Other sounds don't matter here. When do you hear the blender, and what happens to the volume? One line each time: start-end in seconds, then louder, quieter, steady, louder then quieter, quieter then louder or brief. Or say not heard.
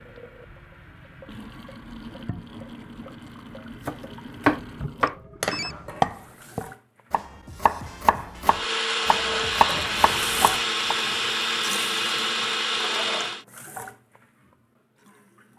8.4-13.4 steady.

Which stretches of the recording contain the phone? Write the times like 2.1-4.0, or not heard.
5.0-5.8.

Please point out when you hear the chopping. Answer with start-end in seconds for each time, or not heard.
3.9-10.9.